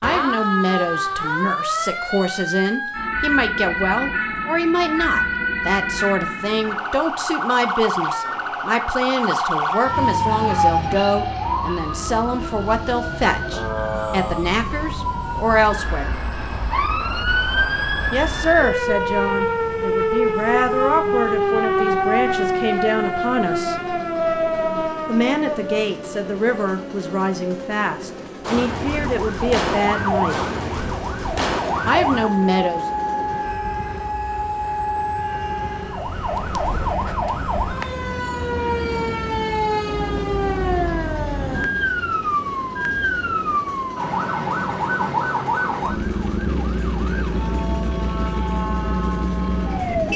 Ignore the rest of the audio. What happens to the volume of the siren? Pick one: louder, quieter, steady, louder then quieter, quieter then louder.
steady.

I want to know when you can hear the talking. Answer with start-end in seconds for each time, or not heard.
0.0-16.2, 18.1-23.8, 25.1-30.4, 31.9-32.9.